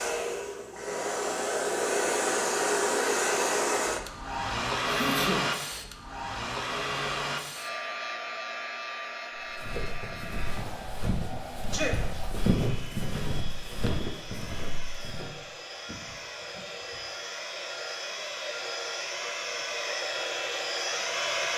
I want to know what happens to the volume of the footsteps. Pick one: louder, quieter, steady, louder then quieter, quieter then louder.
louder then quieter.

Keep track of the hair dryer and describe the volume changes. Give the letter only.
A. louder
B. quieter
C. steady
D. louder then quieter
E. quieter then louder
E.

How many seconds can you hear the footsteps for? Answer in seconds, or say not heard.
6 s.